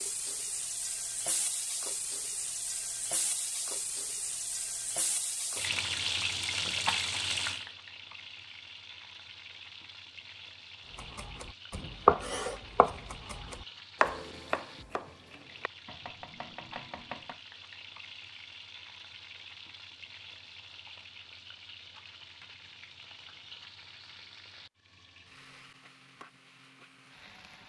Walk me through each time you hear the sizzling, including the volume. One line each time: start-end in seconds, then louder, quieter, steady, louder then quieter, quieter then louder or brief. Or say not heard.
0.0-27.6 quieter.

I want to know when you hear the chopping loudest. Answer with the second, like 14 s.
12 s.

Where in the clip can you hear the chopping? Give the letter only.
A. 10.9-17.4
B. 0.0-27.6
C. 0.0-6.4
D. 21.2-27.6
A.